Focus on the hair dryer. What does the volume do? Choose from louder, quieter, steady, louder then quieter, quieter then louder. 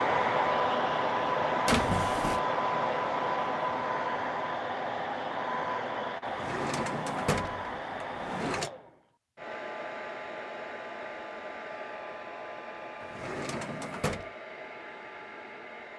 quieter.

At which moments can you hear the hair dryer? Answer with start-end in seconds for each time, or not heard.
0.0-15.9.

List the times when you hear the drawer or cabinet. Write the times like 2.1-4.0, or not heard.
1.6-2.4, 6.2-8.7, 13.0-14.3.